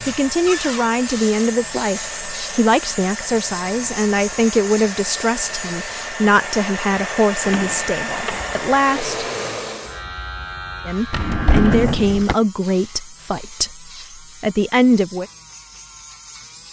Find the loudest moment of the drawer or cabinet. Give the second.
12 s.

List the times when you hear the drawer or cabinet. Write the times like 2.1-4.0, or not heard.
0.5-0.9, 7.4-8.8, 11.1-12.3.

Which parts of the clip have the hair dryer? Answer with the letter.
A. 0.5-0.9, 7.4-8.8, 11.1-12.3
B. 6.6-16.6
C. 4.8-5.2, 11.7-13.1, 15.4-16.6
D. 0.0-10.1
D.